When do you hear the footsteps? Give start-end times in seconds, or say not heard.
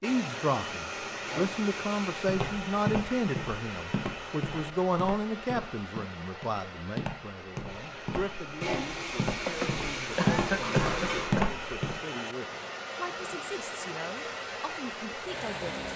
2.1-11.9.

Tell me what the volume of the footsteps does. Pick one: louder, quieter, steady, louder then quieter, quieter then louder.
quieter then louder.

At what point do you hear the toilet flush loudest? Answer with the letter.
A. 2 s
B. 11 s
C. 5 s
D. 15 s
B.